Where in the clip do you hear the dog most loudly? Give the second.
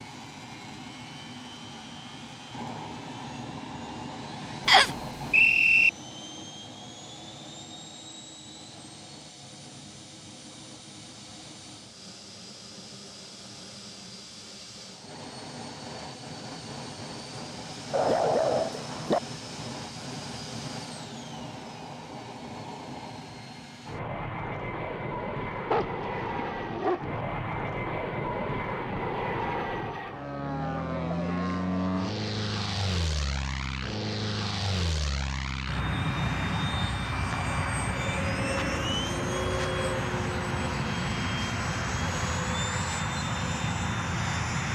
18 s.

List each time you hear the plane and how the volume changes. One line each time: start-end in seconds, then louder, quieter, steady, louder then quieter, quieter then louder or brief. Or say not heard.
0.0-44.7 louder.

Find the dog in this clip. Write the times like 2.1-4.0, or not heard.
17.9-19.2, 25.7-27.2.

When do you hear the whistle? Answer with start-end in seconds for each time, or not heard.
4.7-5.9.